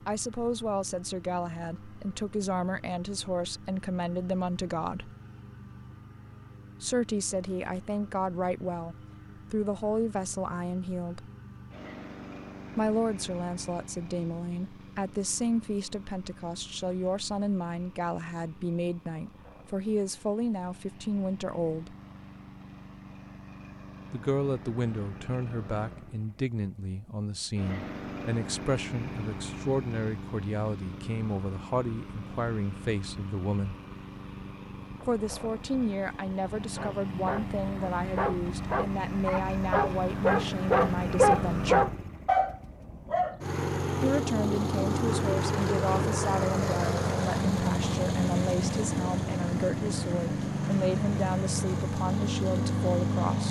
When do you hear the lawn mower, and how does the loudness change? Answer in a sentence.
The lawn mower can be heard from 0.0 to 53.4 s, getting louder.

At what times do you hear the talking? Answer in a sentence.
The talking can be heard from 0.1 to 5.1 s, from 6.8 to 11.3 s, from 12.8 to 21.9 s, from 24.1 to 33.8 s, from 35.0 to 41.9 s and from 44.0 to 53.4 s.